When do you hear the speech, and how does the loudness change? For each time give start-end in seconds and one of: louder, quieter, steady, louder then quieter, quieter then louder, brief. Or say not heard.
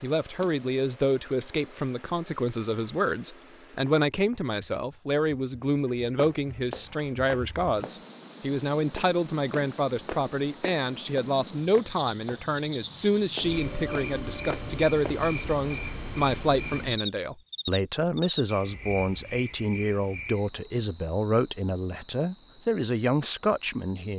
0.0-24.1 steady.